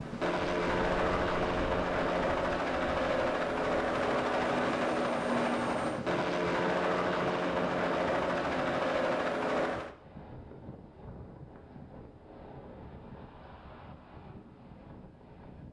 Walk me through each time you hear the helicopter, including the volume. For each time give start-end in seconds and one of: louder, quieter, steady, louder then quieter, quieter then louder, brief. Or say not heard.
0.0-9.9 steady.